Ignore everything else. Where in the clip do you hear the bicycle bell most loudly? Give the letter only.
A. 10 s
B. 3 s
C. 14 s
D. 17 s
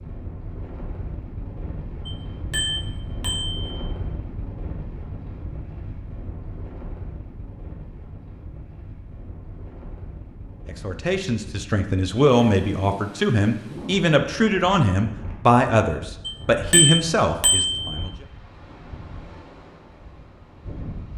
D.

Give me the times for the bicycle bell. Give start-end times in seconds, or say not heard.
2.0-3.7, 16.2-17.9.